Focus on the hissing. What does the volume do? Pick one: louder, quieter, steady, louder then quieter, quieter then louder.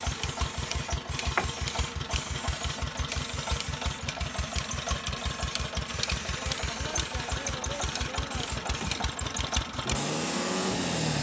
quieter then louder.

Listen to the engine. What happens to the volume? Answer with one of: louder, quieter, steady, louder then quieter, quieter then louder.
steady.